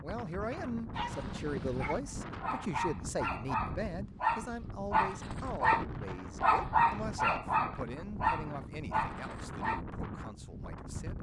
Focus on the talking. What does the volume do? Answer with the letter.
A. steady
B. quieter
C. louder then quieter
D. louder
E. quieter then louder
B.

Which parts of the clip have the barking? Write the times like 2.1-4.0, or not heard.
0.9-9.8.